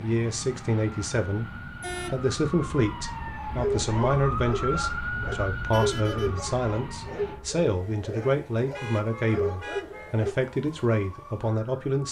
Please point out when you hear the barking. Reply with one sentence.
You can hear the barking from 3.5 to 10.3 s.